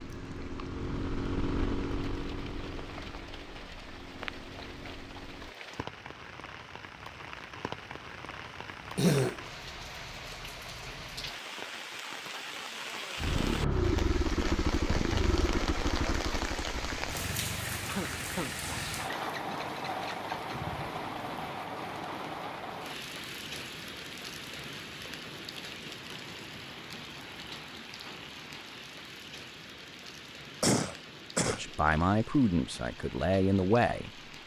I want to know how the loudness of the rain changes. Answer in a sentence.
The loudness of the rain goes up, then down.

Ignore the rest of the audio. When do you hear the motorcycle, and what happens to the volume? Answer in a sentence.
You can hear the motorcycle from 0.0 to 5.5 s, getting quieter; and from 13.2 to 21.6 s, getting quieter.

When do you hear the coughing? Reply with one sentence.
You can hear the coughing from 8.9 to 9.4 s, from 17.9 to 18.6 s and from 30.6 to 31.6 s.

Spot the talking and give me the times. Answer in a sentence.
The talking can be heard from 31.4 to 34.1 s.